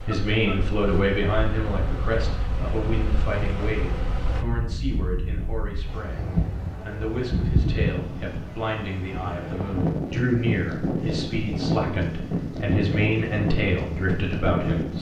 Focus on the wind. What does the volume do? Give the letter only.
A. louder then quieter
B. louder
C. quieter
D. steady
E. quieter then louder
B.